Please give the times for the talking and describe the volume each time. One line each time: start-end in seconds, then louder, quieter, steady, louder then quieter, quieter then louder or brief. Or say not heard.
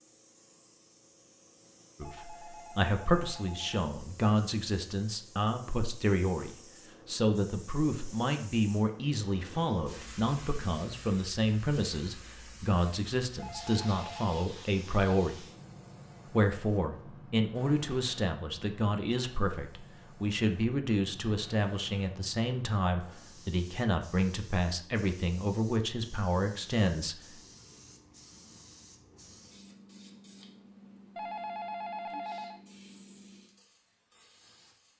2.0-15.4 steady
16.2-27.4 steady.